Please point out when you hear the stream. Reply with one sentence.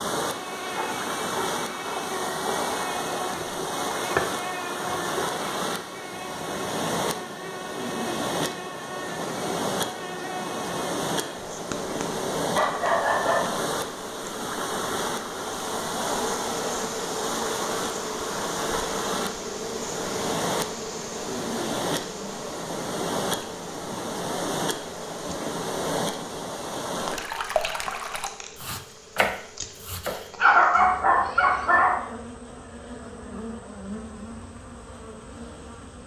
You can hear the stream from 0.0 to 28.3 s.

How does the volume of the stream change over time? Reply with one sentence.
The loudness of the stream stays about the same.